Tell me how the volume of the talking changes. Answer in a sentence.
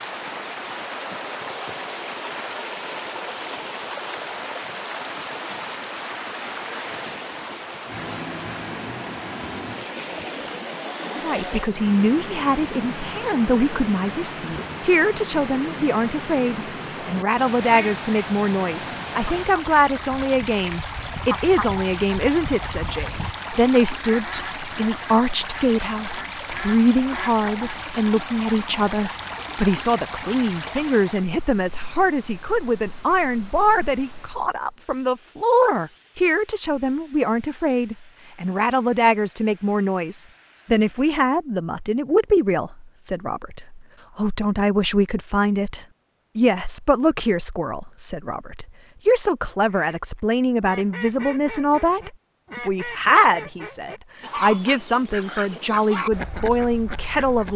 The volume of the talking stays about the same.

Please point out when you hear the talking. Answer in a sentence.
The talking can be heard from 11.1 to 57.5 s.